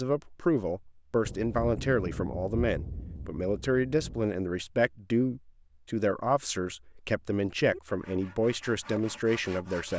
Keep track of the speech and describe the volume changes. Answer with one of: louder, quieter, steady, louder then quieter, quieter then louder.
steady.